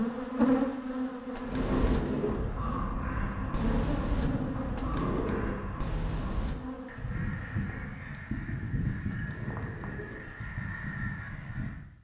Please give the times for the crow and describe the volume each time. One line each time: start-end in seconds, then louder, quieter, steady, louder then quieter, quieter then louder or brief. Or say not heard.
1.4-11.8 steady.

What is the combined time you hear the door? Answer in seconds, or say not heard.
3 s.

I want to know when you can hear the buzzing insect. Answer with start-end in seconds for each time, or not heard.
0.0-8.1.